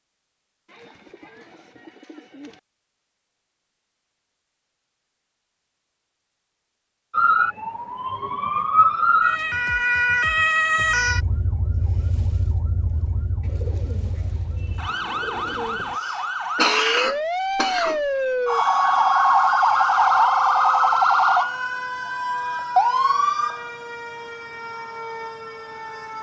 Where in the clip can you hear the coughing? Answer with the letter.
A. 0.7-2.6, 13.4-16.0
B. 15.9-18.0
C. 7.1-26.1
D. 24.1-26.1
B.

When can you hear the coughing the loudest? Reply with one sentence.
The loudest moment of the coughing is at 17 seconds.